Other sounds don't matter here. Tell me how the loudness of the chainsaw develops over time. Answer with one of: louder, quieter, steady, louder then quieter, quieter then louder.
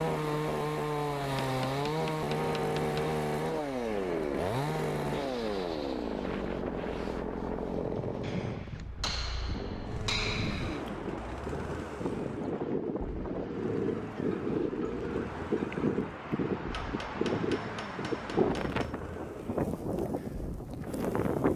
quieter.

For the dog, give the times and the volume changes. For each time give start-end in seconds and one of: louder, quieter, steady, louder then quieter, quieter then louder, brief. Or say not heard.
not heard.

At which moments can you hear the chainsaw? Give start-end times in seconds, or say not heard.
0.0-21.5.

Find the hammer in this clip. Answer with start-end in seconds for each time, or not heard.
1.4-3.1, 8.2-10.8, 16.7-18.9.